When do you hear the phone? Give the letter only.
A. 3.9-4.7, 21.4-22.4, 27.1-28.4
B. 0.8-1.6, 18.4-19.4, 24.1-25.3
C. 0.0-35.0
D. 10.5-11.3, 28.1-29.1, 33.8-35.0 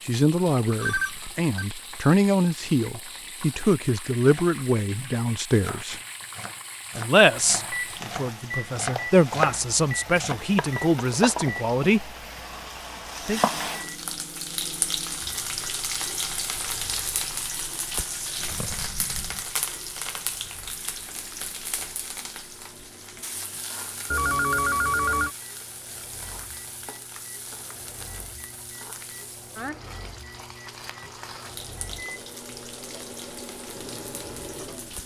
B.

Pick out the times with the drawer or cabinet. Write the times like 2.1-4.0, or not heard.
not heard.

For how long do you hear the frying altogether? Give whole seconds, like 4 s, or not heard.
35 s.